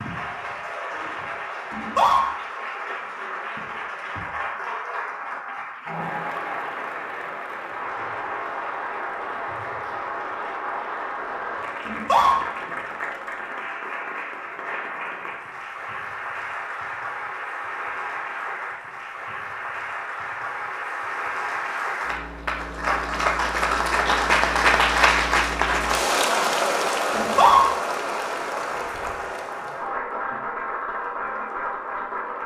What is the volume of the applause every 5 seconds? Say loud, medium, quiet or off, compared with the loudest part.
medium, medium, medium, medium, loud, loud, medium.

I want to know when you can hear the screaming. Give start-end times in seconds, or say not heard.
1.7-2.2, 11.8-12.3, 27.1-27.6.